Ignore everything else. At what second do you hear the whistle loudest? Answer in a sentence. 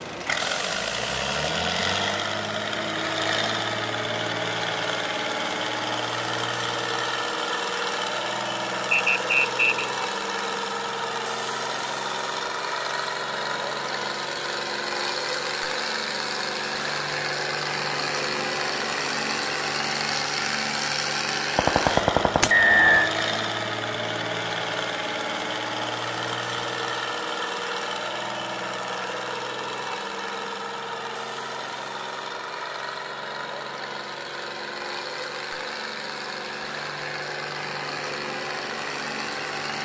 The loudest moment of the whistle is at 23 seconds.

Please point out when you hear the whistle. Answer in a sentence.
You can hear the whistle from 8.9 to 9.8 s and from 22.5 to 23.1 s.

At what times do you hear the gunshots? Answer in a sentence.
The gunshots can be heard from 21.6 to 22.6 s.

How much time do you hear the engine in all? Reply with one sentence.
The engine can be heard for 40 seconds in total.